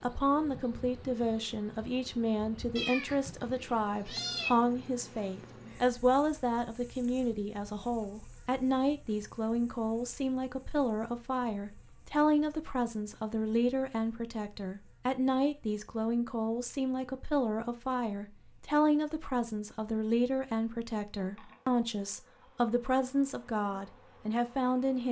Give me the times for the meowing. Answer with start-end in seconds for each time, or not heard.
2.8-4.5.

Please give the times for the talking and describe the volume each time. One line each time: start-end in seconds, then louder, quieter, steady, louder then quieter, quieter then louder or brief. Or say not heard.
0.0-25.0 steady.